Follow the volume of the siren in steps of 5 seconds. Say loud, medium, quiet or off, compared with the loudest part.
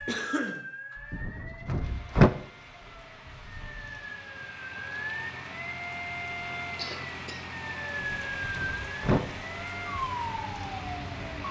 medium, loud, loud.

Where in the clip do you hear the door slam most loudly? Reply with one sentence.
The loudest moment of the door slam is at 2 seconds.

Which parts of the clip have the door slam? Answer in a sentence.
The door slam can be heard from 1.1 to 2.3 s and from 8.0 to 9.2 s.